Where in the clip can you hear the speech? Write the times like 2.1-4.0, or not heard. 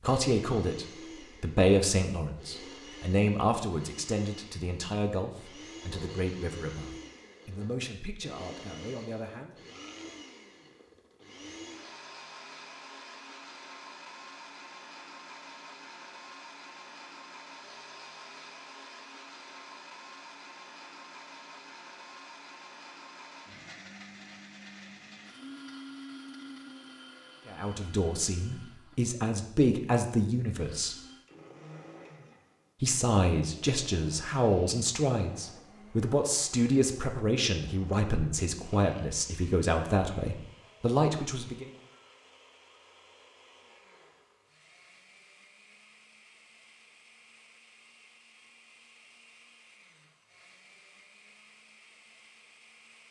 0.0-9.6, 27.4-30.9, 32.8-41.7.